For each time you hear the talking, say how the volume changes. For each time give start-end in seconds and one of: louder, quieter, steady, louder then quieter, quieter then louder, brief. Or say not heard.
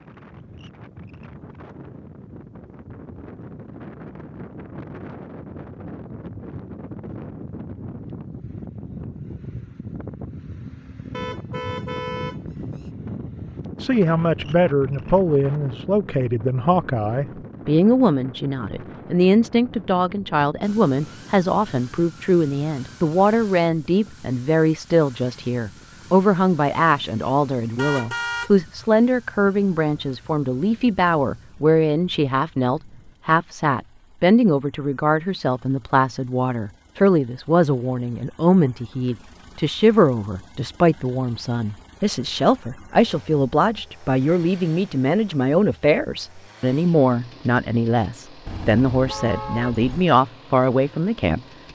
13.8-51.4 steady.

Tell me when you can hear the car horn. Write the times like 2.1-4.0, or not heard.
11.1-12.9, 27.8-28.5, 48.5-50.1.